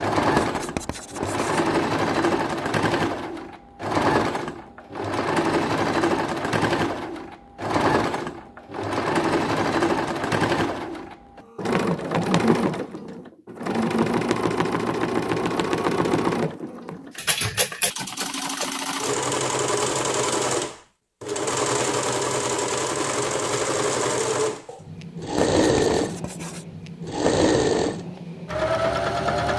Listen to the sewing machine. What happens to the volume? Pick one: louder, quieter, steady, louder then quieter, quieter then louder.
steady.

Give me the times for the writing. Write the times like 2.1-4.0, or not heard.
0.3-1.6, 25.4-26.6.